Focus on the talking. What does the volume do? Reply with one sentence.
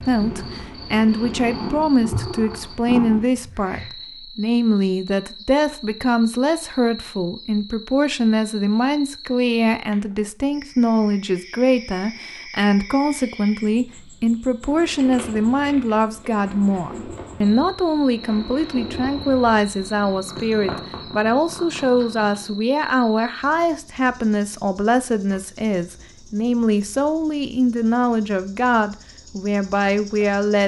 The volume of the talking stays about the same.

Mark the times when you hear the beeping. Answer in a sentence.
The beeping can't be heard in this clip.